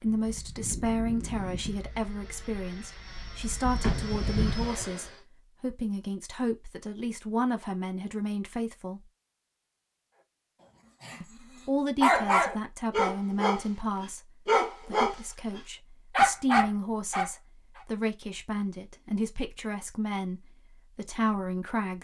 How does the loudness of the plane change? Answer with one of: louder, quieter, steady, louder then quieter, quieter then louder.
quieter then louder.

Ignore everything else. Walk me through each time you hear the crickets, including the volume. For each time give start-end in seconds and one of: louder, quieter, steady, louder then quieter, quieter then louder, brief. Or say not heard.
not heard.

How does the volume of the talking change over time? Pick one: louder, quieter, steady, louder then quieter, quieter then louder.
steady.